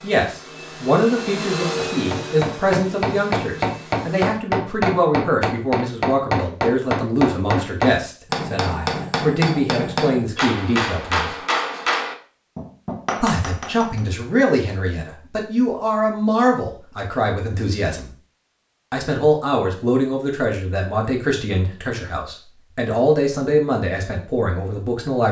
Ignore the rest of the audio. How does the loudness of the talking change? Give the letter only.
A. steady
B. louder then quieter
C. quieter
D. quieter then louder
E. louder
A.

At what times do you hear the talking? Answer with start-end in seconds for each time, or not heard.
0.0-11.3, 13.2-18.1, 18.9-25.2.